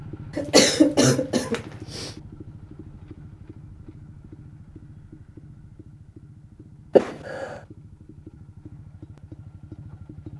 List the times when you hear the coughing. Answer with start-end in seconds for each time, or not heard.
0.3-2.1, 7.0-7.5.